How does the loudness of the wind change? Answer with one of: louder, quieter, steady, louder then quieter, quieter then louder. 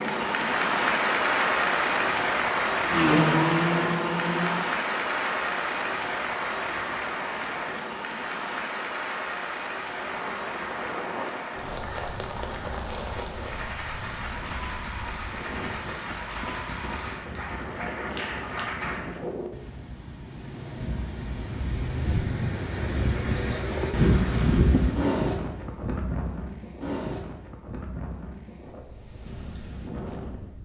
louder then quieter.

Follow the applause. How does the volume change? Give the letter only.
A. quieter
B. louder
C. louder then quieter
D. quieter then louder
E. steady
A.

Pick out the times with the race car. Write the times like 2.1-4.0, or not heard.
2.9-4.7.